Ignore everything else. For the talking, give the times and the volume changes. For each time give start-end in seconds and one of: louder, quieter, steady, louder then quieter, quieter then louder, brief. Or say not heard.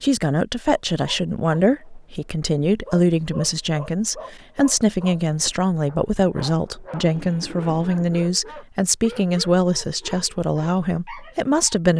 0.0-11.9 steady.